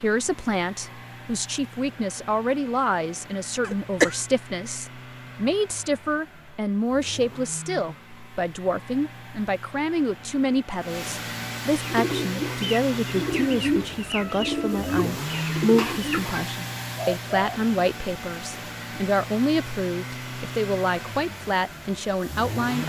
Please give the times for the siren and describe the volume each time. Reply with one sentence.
You can't hear the siren here.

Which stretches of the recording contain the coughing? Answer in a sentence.
You can hear the coughing from 3.6 to 4.2 s.